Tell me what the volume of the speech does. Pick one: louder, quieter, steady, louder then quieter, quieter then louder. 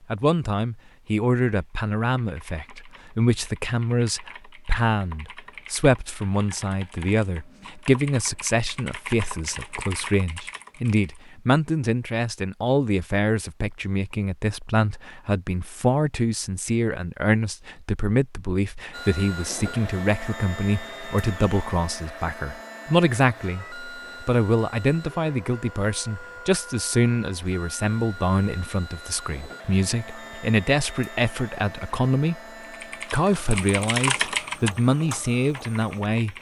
steady.